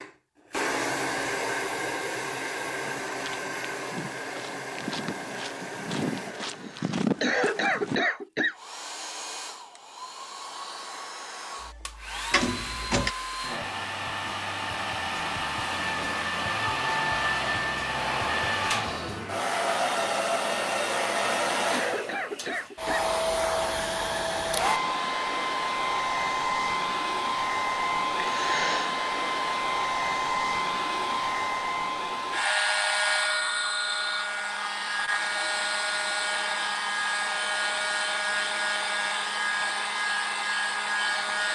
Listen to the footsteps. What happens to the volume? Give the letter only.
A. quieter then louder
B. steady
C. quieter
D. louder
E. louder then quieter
D.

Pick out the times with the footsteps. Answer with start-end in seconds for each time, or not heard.
2.8-8.0.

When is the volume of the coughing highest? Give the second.
7 s.